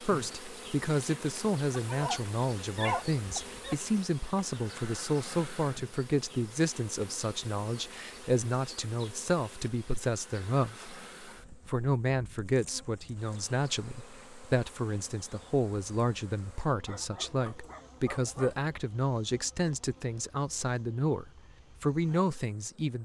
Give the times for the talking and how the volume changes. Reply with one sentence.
You can hear the talking from 0.0 to 23.0 s, at a steady volume.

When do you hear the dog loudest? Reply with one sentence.
The volume of the dog peaks at 3 seconds.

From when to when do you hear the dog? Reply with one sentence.
The dog can be heard from 1.7 to 3.8 s and from 16.9 to 18.6 s.